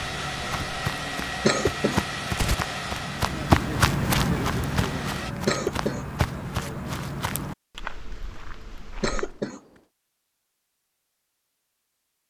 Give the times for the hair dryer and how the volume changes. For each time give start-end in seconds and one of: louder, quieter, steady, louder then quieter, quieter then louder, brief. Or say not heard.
0.0-5.3 quieter.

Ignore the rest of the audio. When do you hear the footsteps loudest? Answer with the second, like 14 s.
4 s.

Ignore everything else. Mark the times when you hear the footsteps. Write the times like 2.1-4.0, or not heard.
0.0-9.4.